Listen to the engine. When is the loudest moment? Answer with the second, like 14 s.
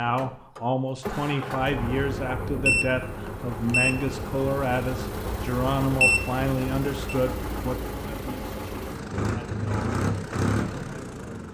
10 s.